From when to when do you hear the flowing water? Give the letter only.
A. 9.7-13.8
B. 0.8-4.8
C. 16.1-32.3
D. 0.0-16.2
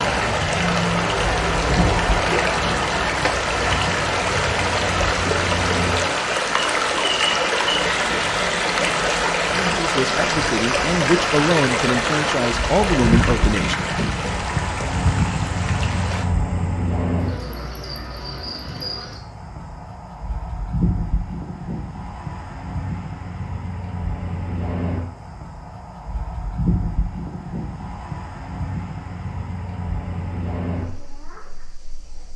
D.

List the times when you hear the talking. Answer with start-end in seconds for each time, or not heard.
9.7-13.8.